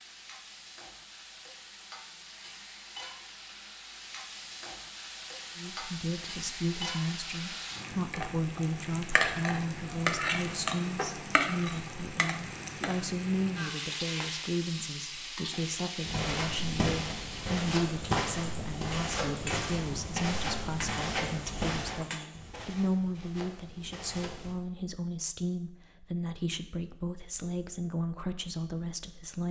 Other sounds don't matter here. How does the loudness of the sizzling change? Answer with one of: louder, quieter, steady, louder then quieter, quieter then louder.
louder then quieter.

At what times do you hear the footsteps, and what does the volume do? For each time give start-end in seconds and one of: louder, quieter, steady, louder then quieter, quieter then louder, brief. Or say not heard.
16.0-24.6 quieter.